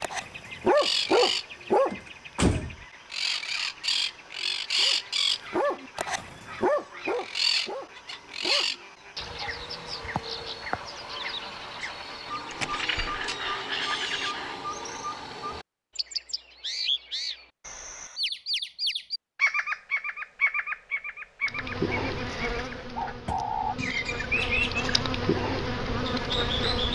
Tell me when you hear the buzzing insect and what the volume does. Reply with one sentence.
You can hear the buzzing insect from 21.4 to 26.9 s, getting quieter then louder.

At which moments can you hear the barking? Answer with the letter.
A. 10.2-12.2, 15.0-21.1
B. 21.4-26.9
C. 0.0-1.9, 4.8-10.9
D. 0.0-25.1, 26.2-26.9
C.